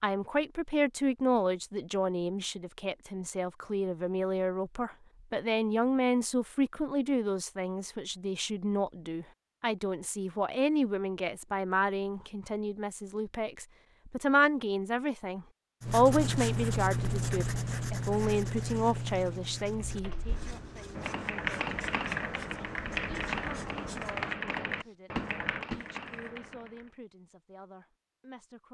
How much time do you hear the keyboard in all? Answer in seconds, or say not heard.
7 s.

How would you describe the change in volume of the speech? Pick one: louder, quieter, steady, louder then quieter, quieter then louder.
quieter.